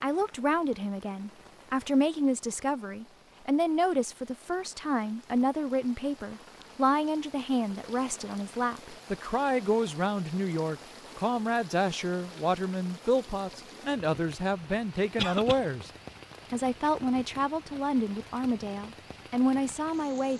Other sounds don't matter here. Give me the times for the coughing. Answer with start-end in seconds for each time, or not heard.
15.2-15.6.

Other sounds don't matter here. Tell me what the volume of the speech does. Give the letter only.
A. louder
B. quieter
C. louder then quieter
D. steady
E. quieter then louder
D.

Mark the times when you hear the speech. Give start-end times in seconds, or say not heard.
0.0-15.9, 16.5-20.3.